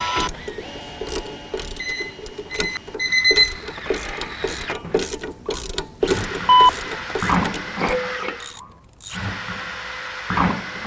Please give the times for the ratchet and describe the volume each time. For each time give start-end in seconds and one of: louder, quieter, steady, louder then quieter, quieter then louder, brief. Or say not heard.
0.1-9.2 louder then quieter.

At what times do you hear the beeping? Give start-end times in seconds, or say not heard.
1.8-3.5, 6.5-7.3.